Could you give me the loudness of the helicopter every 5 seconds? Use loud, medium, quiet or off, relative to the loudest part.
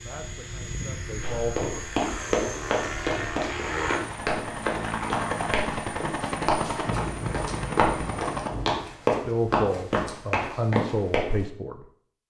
loud, loud, off.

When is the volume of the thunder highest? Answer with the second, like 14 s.
7 s.